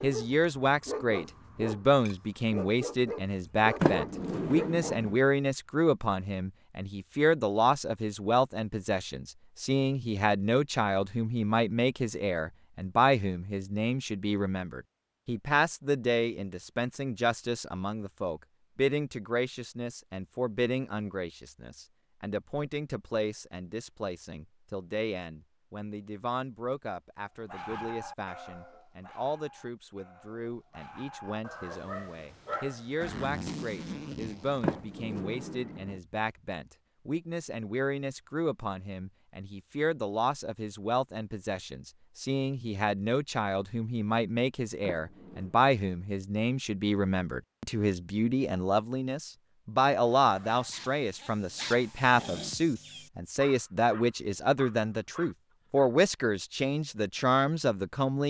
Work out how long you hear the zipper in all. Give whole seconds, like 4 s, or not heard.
2 s.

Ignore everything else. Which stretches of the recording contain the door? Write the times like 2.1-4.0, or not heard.
3.8-5.2, 34.6-36.0, 44.9-45.5.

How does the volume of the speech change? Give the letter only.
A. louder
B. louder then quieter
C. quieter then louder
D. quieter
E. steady
C.